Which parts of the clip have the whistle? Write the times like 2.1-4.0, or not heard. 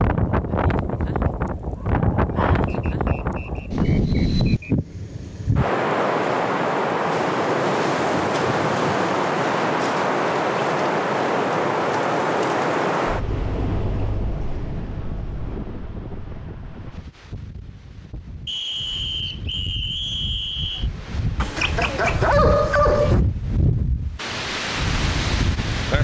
2.6-4.8, 18.4-20.9.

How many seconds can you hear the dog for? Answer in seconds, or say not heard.
4 s.